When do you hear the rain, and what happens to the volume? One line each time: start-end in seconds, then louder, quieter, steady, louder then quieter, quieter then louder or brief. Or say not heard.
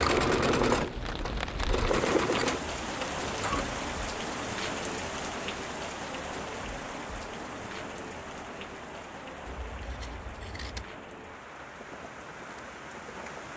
0.0-13.5 quieter.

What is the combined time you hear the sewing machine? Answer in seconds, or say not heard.
4 s.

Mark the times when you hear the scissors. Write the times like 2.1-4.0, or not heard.
9.4-10.9.